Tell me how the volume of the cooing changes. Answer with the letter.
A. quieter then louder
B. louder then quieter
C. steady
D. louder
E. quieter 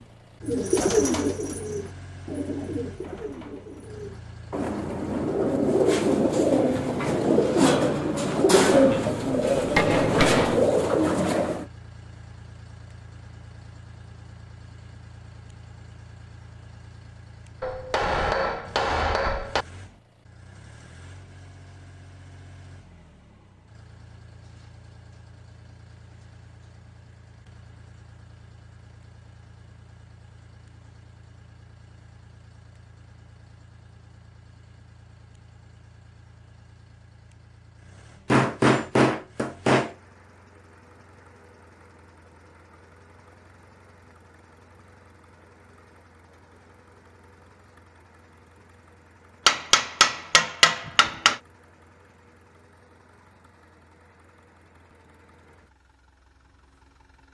A.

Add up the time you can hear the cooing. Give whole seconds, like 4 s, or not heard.
11 s.